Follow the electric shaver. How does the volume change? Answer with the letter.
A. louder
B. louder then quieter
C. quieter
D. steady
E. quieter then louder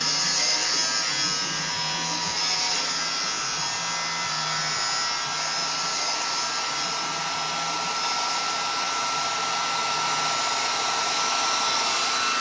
C.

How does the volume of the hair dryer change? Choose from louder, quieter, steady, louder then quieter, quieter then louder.
louder.